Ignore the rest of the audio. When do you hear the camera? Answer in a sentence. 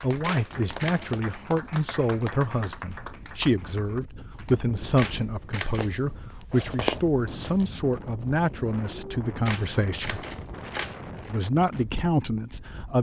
You can hear the camera from 0.2 to 1.1 s, from 5.0 to 6.2 s and from 9.4 to 11.0 s.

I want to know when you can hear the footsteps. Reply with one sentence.
You can hear the footsteps from 5.8 to 7.8 s.